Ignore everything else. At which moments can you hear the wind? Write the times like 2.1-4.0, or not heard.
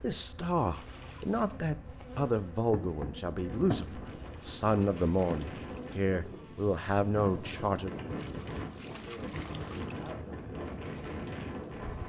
3.2-12.0.